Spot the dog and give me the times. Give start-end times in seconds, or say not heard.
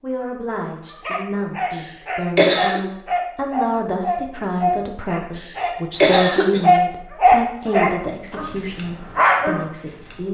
0.9-10.2.